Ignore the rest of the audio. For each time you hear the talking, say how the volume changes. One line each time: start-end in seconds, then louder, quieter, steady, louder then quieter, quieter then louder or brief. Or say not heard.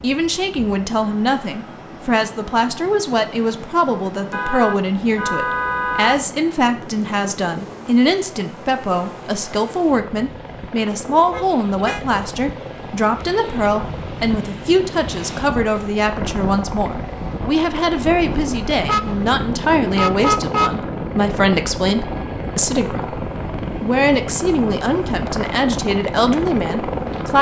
0.0-27.3 steady.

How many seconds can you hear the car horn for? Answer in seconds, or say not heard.
5 s.